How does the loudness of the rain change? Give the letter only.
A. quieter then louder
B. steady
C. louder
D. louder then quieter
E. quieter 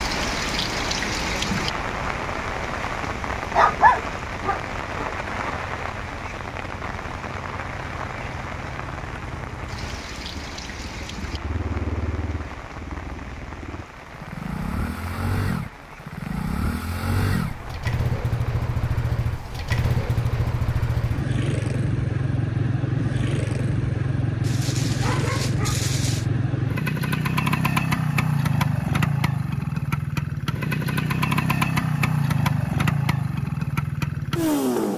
E.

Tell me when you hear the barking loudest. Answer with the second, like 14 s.
4 s.